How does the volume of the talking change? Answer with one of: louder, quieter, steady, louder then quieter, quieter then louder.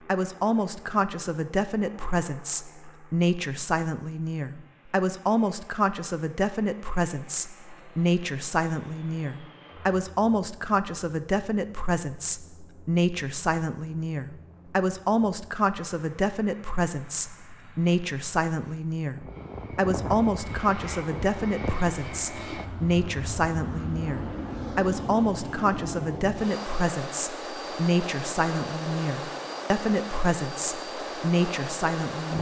steady.